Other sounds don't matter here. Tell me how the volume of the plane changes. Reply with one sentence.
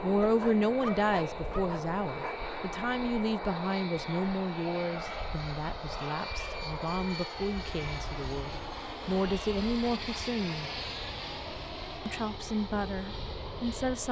The volume of the plane stays about the same.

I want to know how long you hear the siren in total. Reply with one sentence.
You can't hear the siren here.